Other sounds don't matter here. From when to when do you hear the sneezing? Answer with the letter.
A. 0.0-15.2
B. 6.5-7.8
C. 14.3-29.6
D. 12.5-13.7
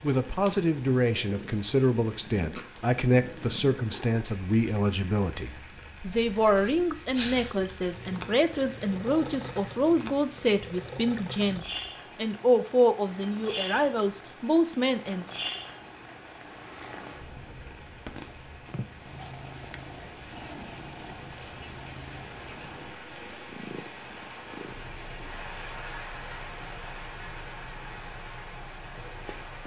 B.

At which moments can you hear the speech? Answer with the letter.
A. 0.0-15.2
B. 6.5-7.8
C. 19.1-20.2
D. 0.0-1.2
A.